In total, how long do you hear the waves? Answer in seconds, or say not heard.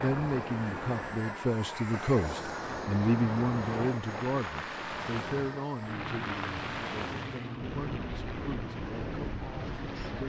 10 s.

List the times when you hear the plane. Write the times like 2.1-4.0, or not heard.
0.0-10.2.